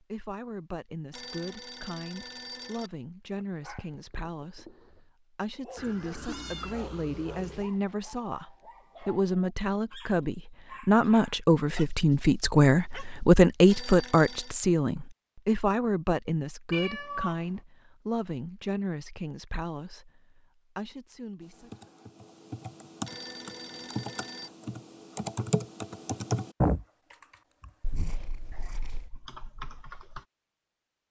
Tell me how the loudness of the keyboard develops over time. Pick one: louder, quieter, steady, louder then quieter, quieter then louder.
louder then quieter.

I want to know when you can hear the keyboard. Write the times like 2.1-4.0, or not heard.
21.4-30.2.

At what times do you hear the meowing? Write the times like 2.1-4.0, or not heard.
5.8-7.7, 16.7-17.6, 27.8-29.1.